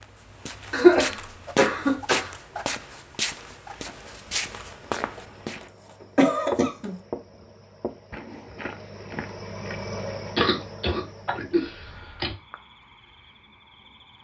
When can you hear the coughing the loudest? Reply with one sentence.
The loudest moment of the coughing is at 1 second.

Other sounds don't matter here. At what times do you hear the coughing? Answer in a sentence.
The coughing can be heard from 0.7 to 2.4 s, from 6.2 to 7.0 s and from 10.3 to 12.3 s.